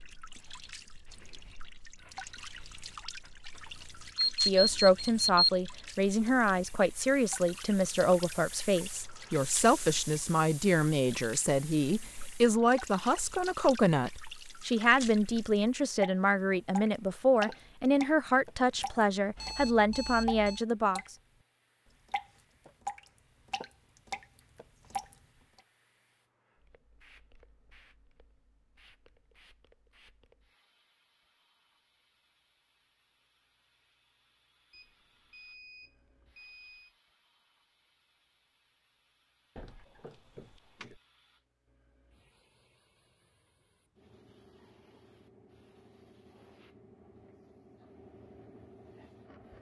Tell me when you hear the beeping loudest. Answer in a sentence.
The loudest moment of the beeping is at 5 seconds.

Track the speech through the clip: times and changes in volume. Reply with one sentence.
The speech can be heard from 4.5 to 21.0 s, at a steady volume.